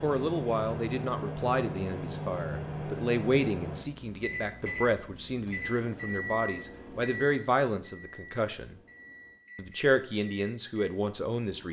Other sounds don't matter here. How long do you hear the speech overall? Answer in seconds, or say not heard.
11 s.